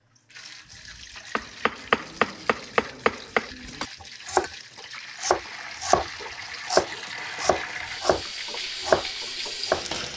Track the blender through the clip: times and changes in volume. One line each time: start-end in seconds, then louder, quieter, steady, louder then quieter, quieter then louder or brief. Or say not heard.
not heard.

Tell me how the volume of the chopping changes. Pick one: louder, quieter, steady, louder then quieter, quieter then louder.
steady.